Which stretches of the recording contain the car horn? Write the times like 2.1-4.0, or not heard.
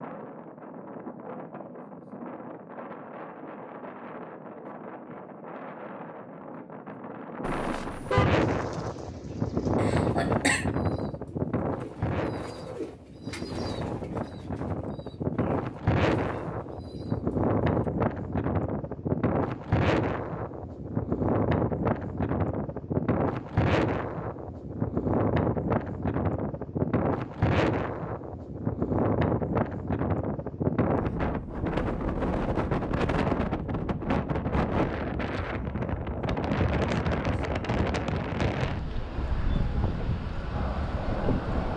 7.4-8.2.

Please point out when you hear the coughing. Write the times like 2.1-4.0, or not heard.
9.8-10.7.